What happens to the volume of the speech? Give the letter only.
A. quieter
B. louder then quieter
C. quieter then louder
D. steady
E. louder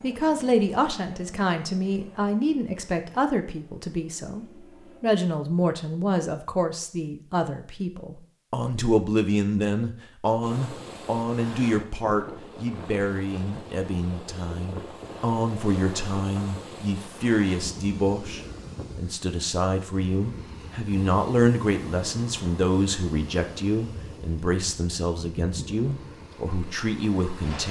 D.